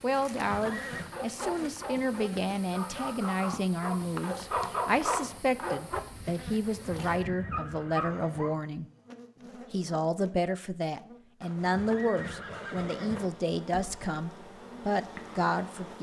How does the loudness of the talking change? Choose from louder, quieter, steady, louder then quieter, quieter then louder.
steady.